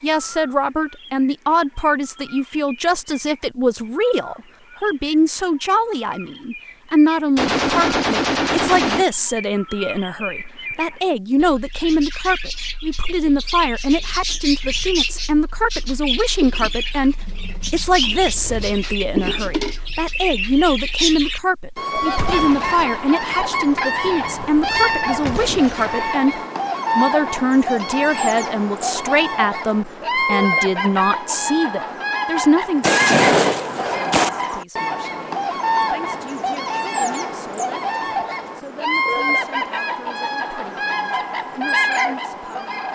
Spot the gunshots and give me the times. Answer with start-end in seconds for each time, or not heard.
7.3-9.1, 22.0-26.2, 32.8-34.3.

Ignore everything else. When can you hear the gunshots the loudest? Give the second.
33 s.